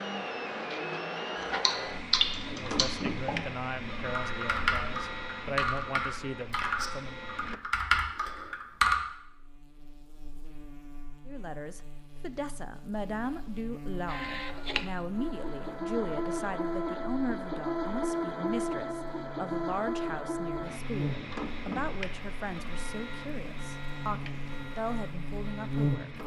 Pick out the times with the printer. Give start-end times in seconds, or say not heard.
0.0-7.6, 14.1-26.2.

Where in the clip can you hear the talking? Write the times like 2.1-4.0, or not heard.
2.5-7.2, 11.2-26.2.